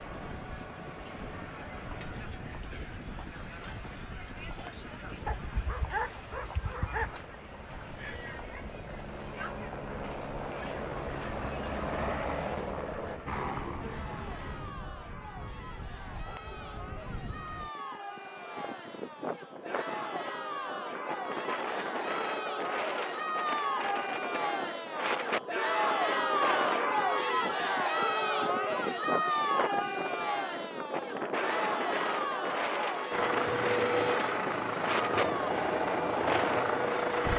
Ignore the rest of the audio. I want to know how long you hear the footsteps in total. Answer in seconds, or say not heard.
not heard.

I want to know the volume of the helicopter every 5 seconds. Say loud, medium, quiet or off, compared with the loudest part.
quiet, quiet, medium, off, off, off, loud, loud.